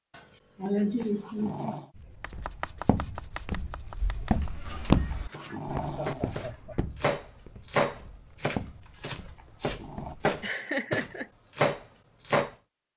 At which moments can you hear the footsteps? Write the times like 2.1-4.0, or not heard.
1.9-10.4.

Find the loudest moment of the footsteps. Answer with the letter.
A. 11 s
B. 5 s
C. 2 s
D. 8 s
B.